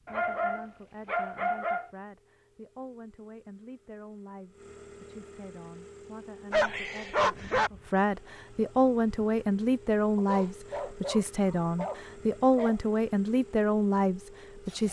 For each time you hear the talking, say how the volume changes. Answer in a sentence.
You can hear the talking from 0.0 to 14.8 s, getting louder.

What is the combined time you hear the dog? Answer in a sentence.
The dog can be heard for 6 seconds in total.